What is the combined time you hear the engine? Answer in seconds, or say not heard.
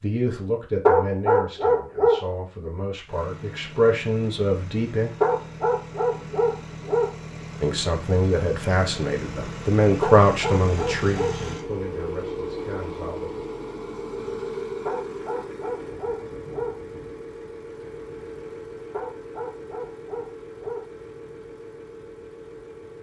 20 s.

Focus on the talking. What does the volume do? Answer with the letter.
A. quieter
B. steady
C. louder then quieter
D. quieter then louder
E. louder
C.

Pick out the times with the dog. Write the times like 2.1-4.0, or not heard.
0.8-2.2, 5.2-7.2, 10.0-11.4, 14.8-16.8, 18.9-20.9.